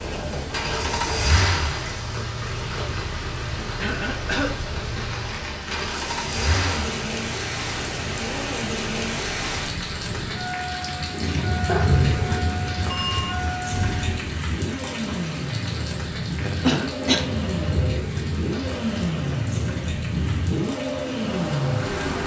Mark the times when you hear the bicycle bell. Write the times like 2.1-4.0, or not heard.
12.8-13.3.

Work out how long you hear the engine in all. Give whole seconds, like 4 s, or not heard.
22 s.